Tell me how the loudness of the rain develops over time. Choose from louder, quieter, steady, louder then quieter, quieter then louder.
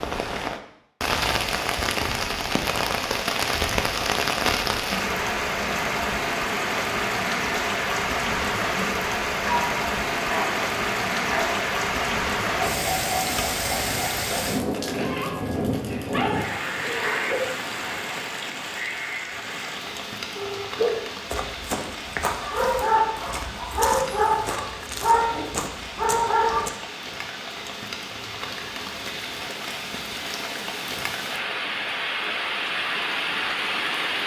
quieter then louder.